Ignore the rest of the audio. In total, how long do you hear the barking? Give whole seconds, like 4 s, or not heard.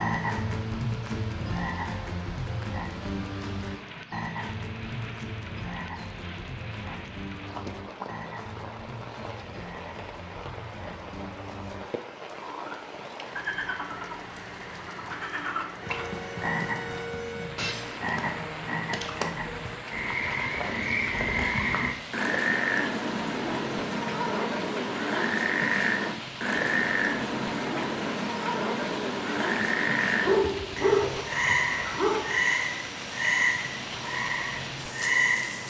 2 s.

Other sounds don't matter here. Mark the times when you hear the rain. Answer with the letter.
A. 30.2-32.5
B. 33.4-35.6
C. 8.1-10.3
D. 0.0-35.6
D.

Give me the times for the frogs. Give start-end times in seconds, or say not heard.
0.0-35.6.